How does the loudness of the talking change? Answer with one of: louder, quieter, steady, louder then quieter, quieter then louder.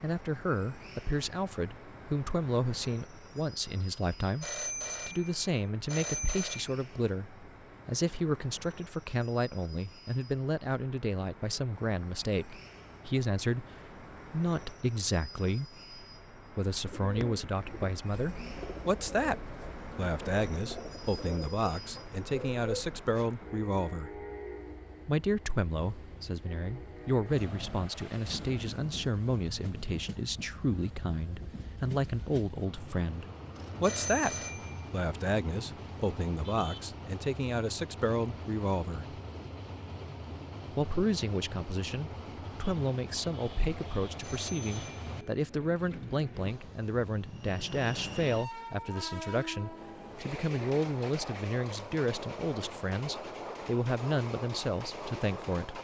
steady.